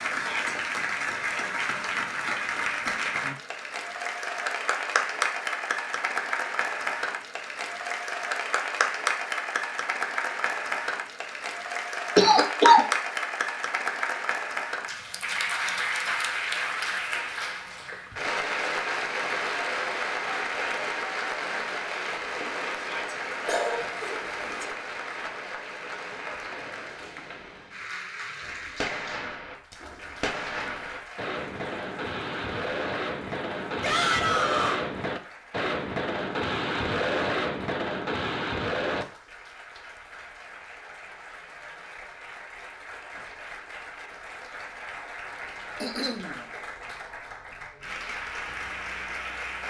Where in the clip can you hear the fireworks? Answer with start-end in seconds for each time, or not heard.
28.4-39.0.